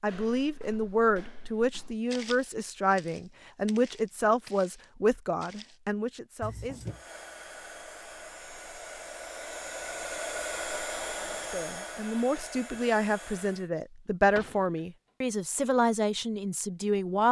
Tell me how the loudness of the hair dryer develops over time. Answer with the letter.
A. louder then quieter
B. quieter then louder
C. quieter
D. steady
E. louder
A.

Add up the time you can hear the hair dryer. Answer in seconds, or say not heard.
7 s.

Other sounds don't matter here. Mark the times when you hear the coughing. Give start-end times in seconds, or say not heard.
6.4-7.0.